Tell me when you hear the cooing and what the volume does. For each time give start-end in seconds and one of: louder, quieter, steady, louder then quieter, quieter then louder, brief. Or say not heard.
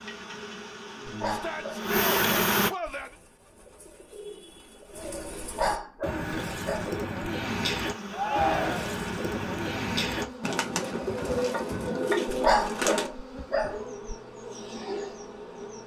2.9-13.1 louder.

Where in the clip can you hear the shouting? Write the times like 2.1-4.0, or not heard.
1.2-3.1, 8.1-8.9.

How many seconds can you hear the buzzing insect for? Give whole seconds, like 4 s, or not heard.
11 s.